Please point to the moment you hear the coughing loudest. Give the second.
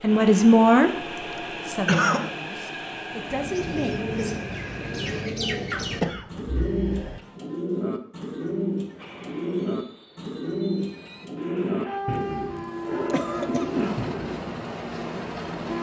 2 s.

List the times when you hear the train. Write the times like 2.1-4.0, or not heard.
0.0-5.3, 8.9-15.7.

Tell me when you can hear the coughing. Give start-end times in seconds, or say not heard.
1.9-2.4, 5.7-7.2, 13.1-13.8.